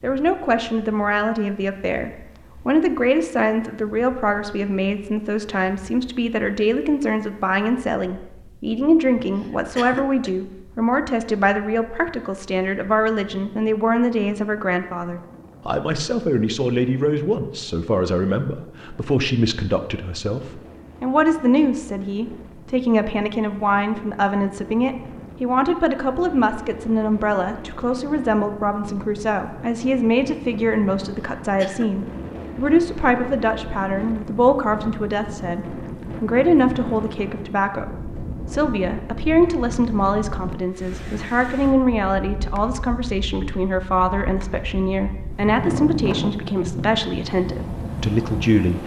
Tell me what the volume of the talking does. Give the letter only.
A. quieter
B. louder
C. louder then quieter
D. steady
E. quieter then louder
D.